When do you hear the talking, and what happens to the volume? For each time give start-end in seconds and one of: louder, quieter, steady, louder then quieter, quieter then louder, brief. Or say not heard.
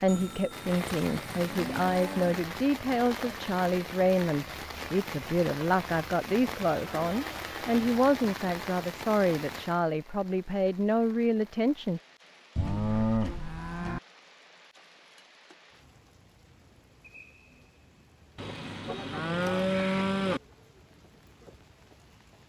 0.0-12.0 steady.